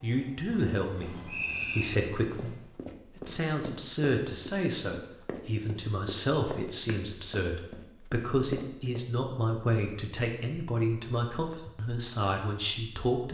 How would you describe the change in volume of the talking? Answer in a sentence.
The loudness of the talking stays about the same.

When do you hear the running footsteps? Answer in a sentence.
You can hear the running footsteps from 2.4 to 9.1 s.